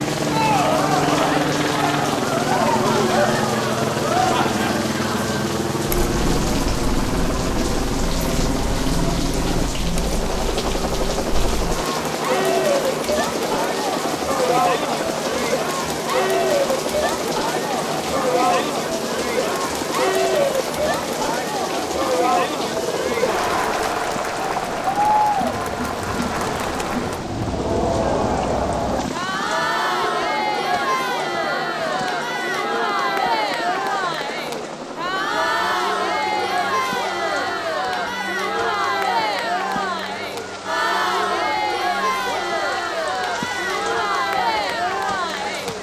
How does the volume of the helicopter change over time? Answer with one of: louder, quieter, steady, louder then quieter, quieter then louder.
quieter.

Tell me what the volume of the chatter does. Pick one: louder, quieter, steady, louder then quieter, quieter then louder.
steady.